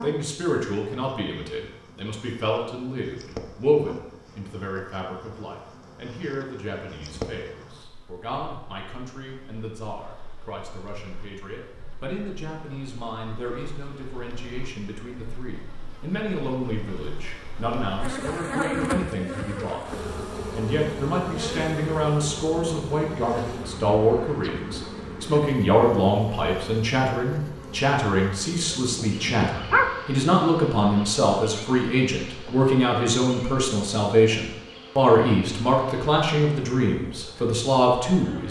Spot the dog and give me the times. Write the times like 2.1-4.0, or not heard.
28.7-30.2.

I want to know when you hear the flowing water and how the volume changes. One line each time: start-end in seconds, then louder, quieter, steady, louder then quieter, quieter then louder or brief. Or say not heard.
not heard.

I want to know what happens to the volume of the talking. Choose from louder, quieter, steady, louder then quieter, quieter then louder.
quieter then louder.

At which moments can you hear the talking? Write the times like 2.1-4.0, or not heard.
0.0-19.9, 20.5-38.4.